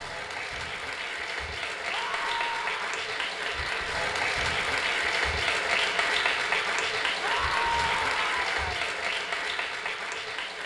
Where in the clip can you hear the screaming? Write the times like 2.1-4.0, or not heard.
1.9-3.0, 7.2-8.8.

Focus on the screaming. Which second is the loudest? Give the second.
8 s.